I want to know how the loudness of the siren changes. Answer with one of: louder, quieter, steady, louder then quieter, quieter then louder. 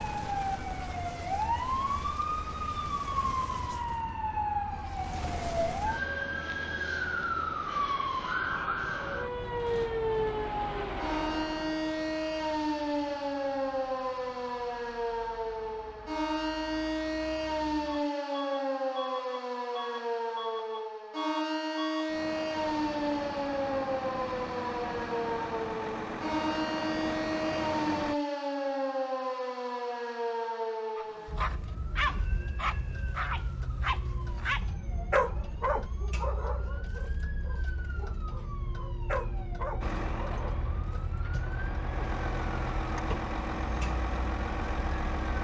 quieter.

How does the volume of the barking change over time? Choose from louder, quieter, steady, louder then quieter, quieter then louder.
quieter then louder.